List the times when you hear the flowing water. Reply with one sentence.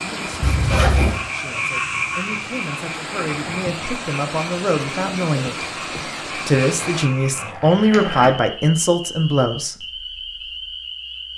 The flowing water can be heard from 0.0 to 7.1 s.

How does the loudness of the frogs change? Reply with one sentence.
The loudness of the frogs goes down.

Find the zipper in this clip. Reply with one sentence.
The zipper can be heard from 0.4 to 1.2 s and from 6.8 to 8.3 s.